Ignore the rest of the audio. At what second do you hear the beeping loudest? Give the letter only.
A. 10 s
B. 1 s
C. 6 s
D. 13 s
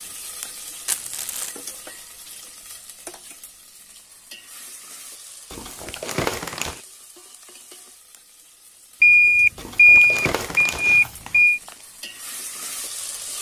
A.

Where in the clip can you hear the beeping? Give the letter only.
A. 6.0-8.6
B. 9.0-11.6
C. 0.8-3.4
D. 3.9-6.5
B.